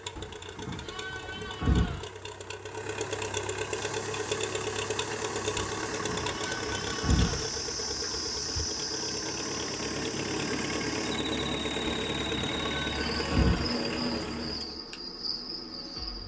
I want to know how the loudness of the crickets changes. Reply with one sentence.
The loudness of the crickets goes up.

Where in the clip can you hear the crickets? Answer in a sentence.
The crickets can be heard from 3.9 to 16.2 s.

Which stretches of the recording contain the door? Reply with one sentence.
You can't hear the door here.